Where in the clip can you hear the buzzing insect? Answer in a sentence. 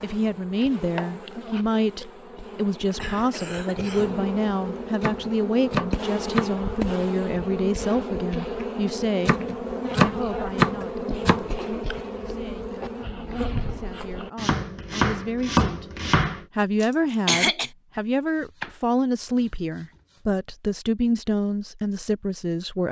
The buzzing insect can be heard from 0.0 to 14.3 s.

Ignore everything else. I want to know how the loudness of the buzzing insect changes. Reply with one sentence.
The loudness of the buzzing insect goes up.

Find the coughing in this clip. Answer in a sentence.
The coughing can be heard from 3.0 to 4.2 s, from 11.6 to 12.9 s and from 16.8 to 17.7 s.